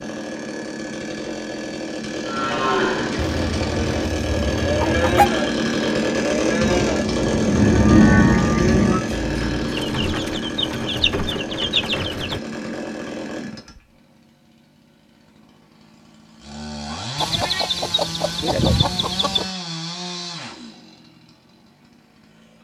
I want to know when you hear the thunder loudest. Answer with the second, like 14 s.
8 s.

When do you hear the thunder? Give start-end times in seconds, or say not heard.
6.6-9.1.